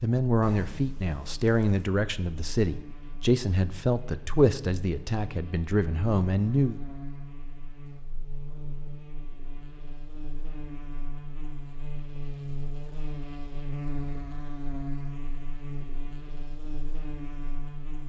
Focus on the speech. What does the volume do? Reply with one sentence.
The loudness of the speech stays about the same.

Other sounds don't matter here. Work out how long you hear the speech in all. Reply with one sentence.
The speech can be heard for 7 seconds in total.